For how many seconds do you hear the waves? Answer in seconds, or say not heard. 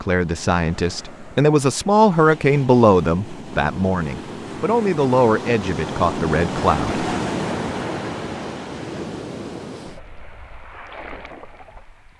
12 s.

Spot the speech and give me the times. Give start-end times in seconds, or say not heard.
0.0-7.0.